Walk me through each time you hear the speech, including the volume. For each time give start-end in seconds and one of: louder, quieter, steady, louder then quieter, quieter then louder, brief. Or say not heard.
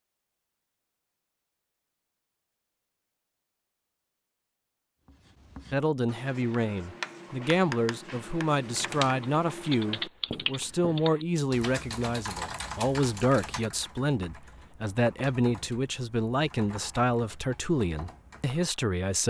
5.7-19.2 steady.